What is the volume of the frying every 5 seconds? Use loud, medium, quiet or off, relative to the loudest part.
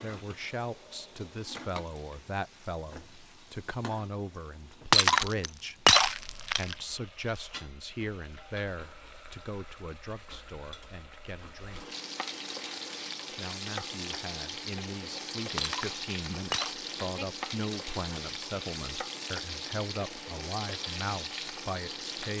medium, quiet, loud, loud, loud.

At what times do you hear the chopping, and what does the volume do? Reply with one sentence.
The chopping can't be heard in this clip.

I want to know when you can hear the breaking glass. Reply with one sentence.
The breaking glass can be heard from 4.9 to 6.8 s and from 15.6 to 16.8 s.